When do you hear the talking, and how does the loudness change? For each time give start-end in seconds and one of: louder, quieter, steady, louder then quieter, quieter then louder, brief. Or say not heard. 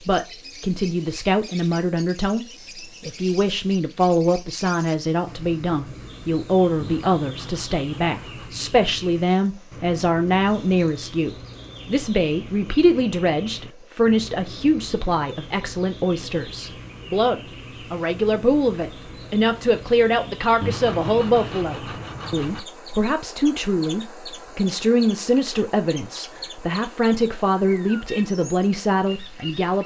0.0-29.8 steady.